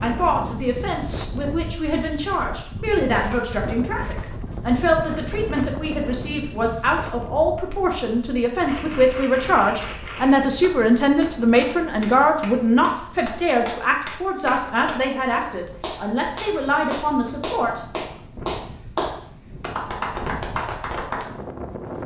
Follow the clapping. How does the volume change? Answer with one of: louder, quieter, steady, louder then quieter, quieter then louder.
louder.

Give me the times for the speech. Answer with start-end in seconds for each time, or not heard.
0.0-17.8.